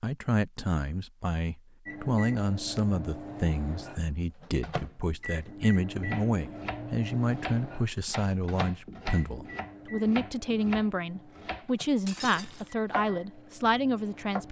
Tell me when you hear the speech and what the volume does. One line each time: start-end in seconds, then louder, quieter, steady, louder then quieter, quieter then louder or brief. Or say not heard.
0.0-14.4 steady.